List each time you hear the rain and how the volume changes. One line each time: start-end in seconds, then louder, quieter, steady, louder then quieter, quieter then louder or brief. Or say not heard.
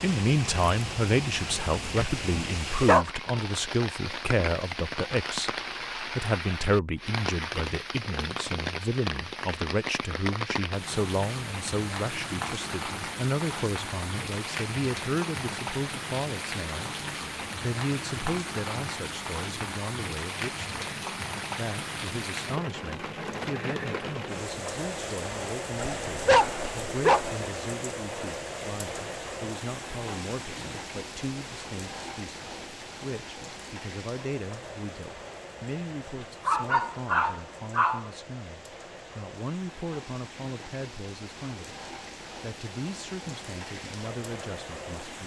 0.0-45.2 quieter.